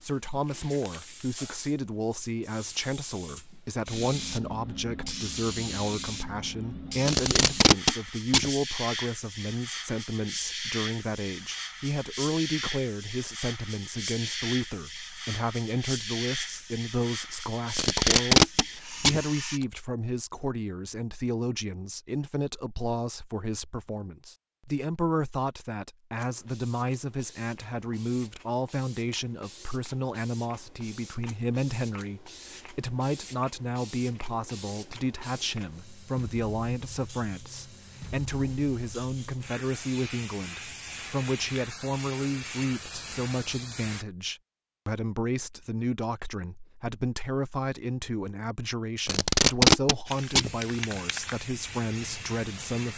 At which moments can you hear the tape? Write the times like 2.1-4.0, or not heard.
7.0-8.5, 17.8-19.6, 49.0-51.0.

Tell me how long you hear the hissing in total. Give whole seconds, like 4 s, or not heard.
40 s.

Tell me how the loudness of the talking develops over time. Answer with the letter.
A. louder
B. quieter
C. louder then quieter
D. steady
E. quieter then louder
D.